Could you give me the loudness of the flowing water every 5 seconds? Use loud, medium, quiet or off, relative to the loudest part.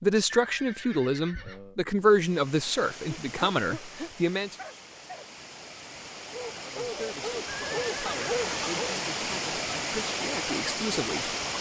quiet, loud, loud.